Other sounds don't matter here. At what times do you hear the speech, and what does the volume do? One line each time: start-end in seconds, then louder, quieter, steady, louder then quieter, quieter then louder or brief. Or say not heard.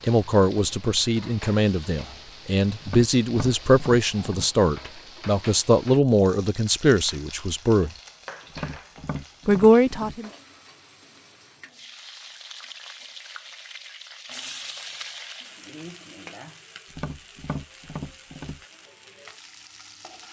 0.0-7.9 steady
9.4-10.3 brief.